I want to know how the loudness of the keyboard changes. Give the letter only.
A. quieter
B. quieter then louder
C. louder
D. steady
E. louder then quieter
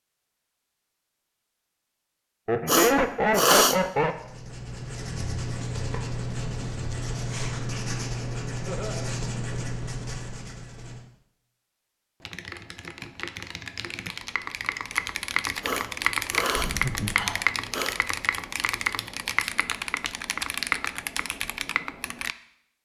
C.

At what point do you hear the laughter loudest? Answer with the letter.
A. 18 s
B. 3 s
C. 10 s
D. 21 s
B.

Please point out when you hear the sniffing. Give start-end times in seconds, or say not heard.
2.6-3.8, 15.6-18.0.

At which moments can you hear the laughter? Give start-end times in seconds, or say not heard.
2.5-4.2, 8.7-9.1, 16.6-17.3.